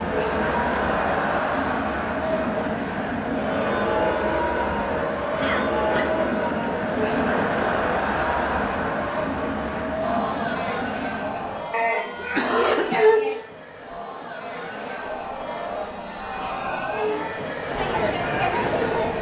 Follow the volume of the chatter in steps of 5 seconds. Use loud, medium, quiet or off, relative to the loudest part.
loud, loud, medium, loud.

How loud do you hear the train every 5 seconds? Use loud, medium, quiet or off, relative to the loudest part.
loud, loud, medium, loud.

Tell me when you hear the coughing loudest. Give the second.
13 s.